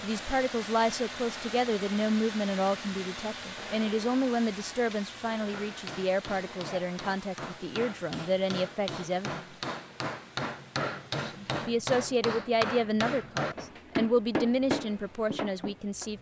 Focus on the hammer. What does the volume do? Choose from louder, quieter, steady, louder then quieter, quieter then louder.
louder.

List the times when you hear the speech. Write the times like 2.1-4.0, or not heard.
0.0-9.4, 11.1-16.1.